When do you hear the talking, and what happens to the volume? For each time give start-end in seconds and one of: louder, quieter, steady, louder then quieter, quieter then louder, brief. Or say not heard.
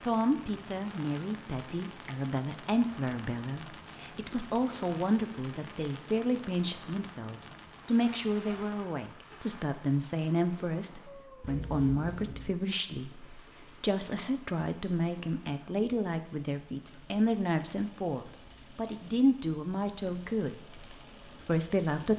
0.0-22.1 steady.